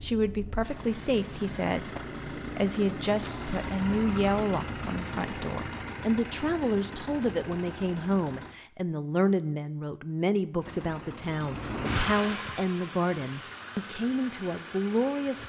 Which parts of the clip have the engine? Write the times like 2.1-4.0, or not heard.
0.0-8.6, 10.6-15.4.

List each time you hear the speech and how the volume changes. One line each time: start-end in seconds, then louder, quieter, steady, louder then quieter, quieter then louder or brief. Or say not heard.
0.0-15.4 steady.